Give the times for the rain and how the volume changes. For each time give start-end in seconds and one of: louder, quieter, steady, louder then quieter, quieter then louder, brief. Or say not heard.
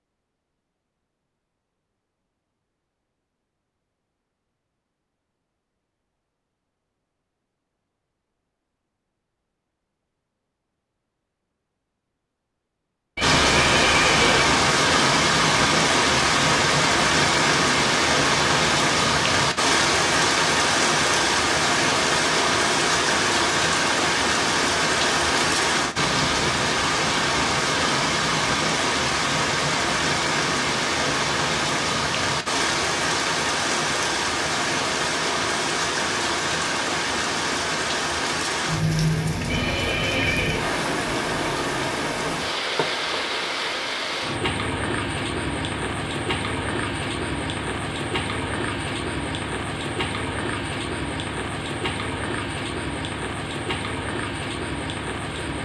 13.2-55.5 quieter.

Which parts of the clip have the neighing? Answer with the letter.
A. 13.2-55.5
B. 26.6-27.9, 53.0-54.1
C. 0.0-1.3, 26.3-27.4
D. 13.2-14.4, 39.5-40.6
D.